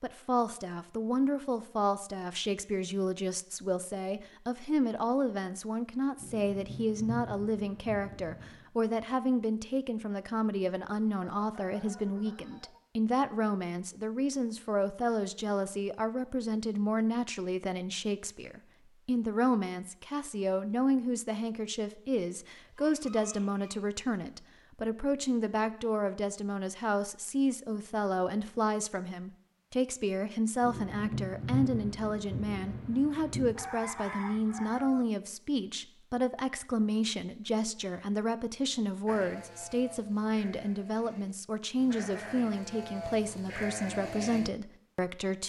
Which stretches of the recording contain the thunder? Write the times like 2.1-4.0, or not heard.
6.2-8.7, 30.6-33.5.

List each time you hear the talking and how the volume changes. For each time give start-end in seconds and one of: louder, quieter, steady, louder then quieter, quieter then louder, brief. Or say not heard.
0.0-45.4 steady.